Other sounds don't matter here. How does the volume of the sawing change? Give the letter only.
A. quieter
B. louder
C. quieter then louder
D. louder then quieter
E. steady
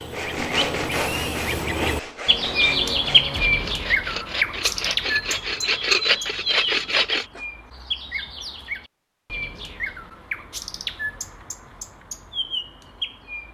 C.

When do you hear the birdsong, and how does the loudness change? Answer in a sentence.
The birdsong can be heard from 0.0 to 13.4 s, getting quieter.